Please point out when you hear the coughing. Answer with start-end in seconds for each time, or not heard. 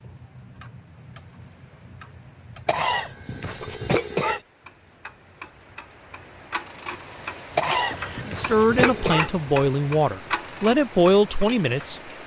2.6-4.4, 7.5-9.3.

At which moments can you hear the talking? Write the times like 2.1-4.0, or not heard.
8.2-12.2.